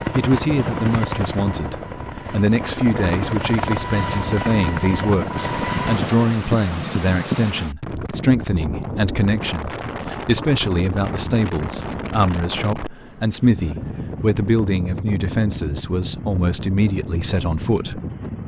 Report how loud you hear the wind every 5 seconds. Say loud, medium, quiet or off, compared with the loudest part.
off, loud, loud, loud.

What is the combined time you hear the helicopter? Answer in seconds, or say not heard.
6 s.